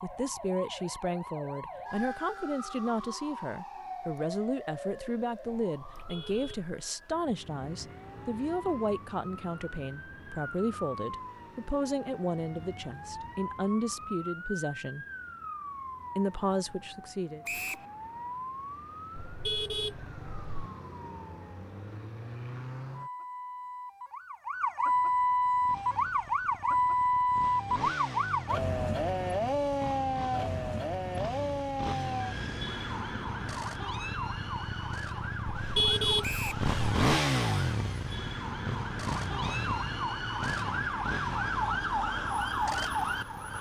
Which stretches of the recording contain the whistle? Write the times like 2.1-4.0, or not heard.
17.4-17.9, 36.2-36.6.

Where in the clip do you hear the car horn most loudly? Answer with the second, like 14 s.
36 s.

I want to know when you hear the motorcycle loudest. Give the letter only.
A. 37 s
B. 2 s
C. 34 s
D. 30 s
A.